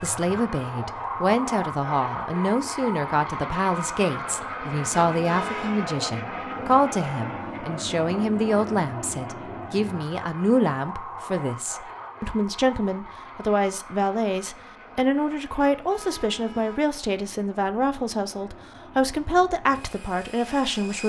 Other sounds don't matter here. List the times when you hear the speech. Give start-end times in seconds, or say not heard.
0.0-21.0.